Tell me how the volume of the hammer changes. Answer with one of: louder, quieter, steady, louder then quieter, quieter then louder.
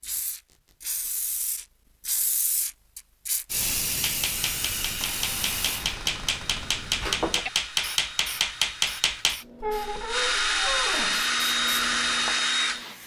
louder.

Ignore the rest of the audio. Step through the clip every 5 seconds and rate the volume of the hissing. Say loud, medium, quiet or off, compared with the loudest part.
loud, loud, medium.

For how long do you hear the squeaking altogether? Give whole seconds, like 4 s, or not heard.
4 s.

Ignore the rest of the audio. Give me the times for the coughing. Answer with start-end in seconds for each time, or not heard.
not heard.